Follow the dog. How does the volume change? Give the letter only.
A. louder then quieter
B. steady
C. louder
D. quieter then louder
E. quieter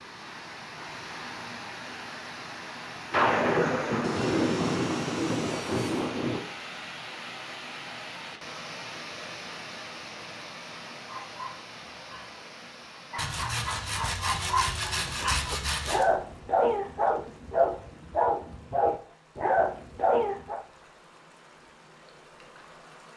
C.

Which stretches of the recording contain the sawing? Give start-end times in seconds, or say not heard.
4.0-6.1, 13.2-16.1.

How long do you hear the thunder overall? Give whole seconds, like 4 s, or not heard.
3 s.